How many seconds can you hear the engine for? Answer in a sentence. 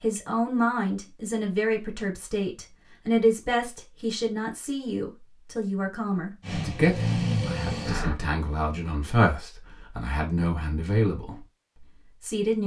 The engine can be heard for 2 seconds in total.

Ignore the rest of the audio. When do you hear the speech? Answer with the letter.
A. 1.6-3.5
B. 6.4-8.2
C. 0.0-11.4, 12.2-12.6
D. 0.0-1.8
C.